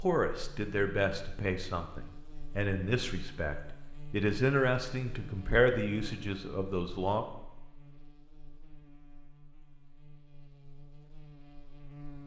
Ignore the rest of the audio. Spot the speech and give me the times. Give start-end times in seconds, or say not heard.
0.0-7.2.